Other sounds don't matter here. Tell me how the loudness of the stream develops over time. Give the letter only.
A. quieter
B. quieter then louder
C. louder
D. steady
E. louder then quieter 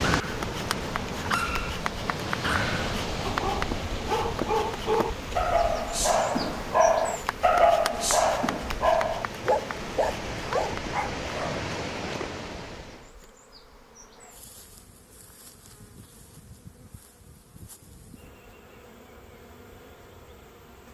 B.